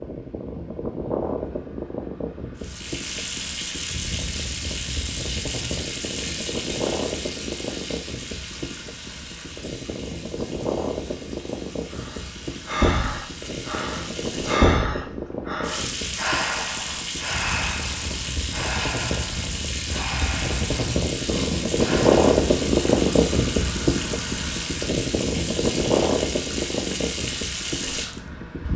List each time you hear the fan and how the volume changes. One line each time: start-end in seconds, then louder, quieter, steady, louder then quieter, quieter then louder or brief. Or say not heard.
0.0-28.7 louder.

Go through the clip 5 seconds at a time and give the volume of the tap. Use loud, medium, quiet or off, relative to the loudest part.
loud, loud, medium, loud, loud, loud.